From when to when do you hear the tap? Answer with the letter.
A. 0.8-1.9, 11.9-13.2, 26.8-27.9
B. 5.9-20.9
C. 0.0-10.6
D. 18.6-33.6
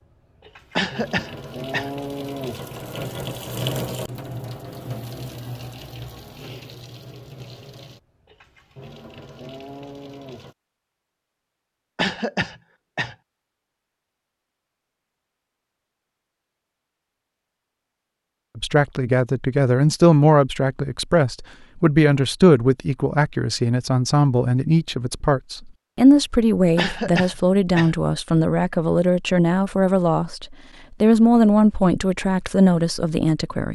C.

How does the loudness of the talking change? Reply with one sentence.
The volume of the talking stays about the same.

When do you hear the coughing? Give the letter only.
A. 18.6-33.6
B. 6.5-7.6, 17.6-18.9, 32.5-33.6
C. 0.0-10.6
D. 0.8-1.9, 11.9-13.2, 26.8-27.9
D.